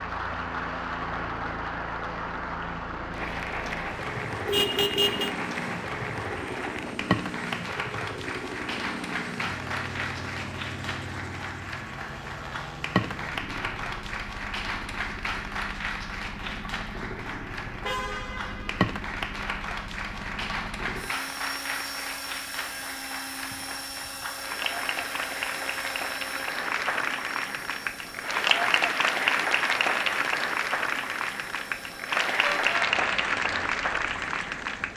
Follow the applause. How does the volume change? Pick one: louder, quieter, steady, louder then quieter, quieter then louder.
louder.